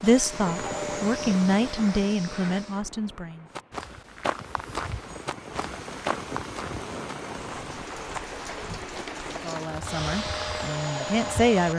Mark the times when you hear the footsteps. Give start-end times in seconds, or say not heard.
3.5-9.3.